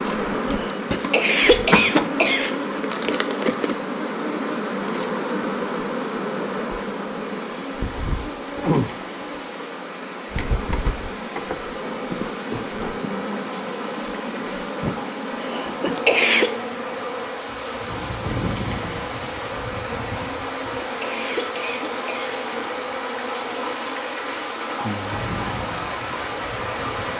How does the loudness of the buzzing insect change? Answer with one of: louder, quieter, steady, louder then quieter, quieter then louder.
quieter.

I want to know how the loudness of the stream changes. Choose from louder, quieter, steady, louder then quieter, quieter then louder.
louder.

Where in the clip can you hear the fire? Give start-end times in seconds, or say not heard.
not heard.